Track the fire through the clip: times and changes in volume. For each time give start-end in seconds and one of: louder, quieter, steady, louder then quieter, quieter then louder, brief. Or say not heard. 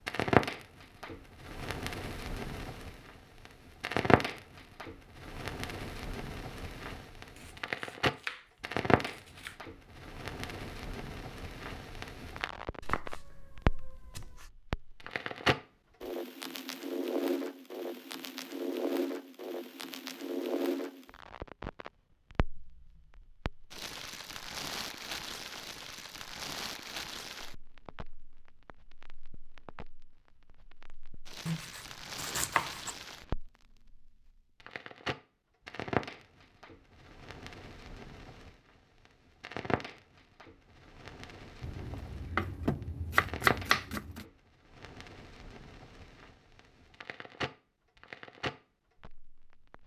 0.1-49.8 quieter.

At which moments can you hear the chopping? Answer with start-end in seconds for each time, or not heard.
7.3-8.4, 9.1-9.6, 12.8-14.5, 31.4-33.0, 41.6-44.2.